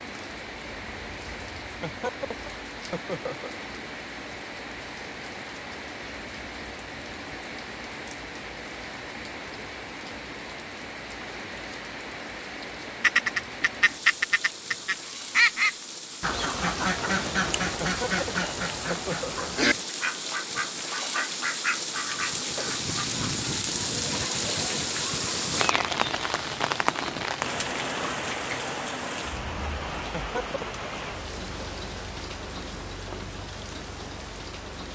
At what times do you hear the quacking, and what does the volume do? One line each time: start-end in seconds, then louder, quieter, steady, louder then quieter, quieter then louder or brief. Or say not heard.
13.0-23.4 quieter.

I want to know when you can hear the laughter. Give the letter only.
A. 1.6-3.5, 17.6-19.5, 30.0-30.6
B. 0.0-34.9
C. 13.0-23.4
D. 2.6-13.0
A.